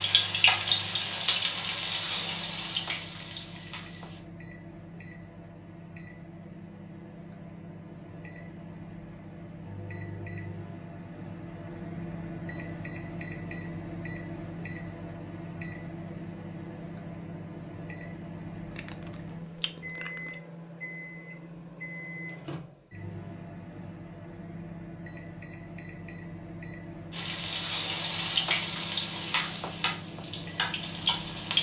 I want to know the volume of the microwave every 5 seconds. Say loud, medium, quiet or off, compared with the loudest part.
medium, medium, loud, loud, loud, loud, loud.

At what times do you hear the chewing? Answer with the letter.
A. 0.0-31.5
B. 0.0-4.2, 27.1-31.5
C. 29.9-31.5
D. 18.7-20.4
D.